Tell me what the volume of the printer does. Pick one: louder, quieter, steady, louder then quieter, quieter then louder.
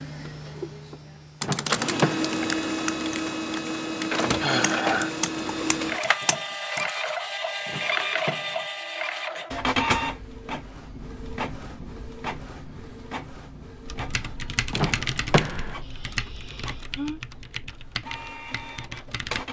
quieter.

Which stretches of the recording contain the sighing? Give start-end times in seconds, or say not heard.
4.4-5.1, 15.6-17.2.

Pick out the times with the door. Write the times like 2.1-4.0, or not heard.
1.4-2.4, 7.7-8.7, 14.7-15.8.